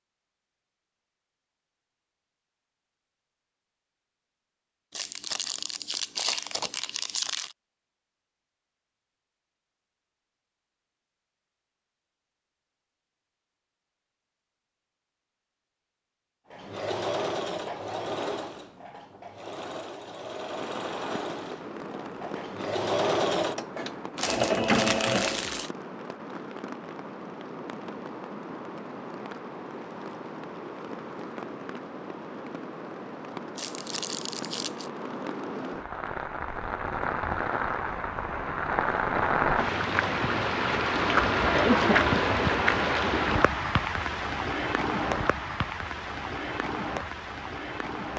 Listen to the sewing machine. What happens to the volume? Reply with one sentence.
The volume of the sewing machine goes down, then up.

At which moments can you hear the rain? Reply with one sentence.
The rain can be heard from 20.5 to 48.1 s.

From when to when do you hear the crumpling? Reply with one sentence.
The crumpling can be heard from 4.9 to 7.5 s, from 24.1 to 25.7 s and from 33.5 to 34.9 s.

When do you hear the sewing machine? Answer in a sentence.
The sewing machine can be heard from 16.5 to 25.4 s.